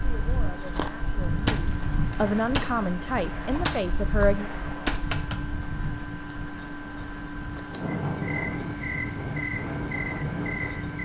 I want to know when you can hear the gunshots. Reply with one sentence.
The gunshots can be heard from 1.4 to 5.3 s.